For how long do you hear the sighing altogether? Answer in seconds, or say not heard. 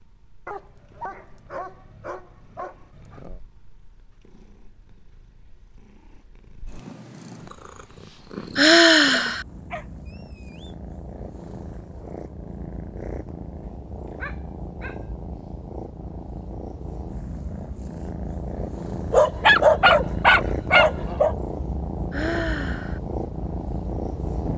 2 s.